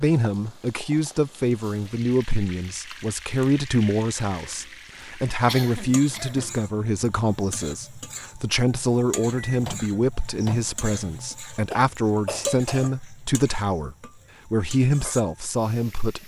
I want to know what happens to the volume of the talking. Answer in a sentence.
The volume of the talking stays about the same.